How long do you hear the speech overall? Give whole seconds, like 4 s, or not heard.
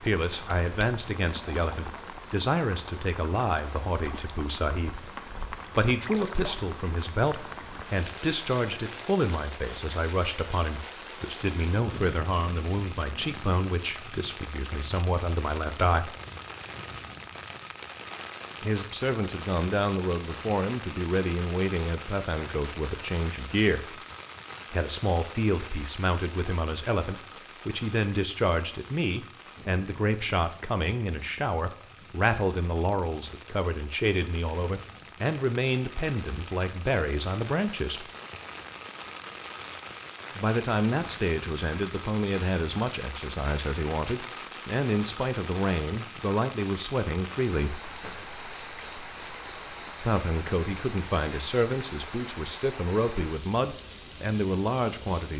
47 s.